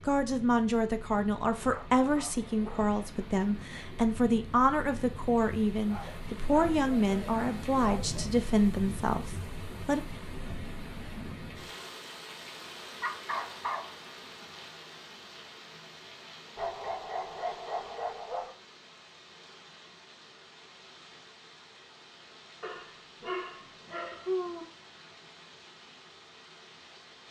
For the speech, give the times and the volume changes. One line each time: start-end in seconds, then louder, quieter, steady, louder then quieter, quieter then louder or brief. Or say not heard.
0.1-10.0 steady.